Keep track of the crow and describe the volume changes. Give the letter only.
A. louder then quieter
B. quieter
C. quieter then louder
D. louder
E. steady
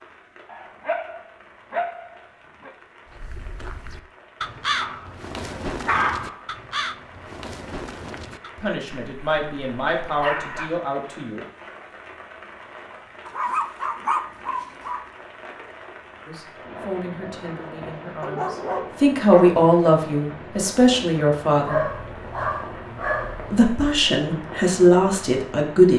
A.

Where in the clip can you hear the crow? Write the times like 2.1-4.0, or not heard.
3.0-8.5.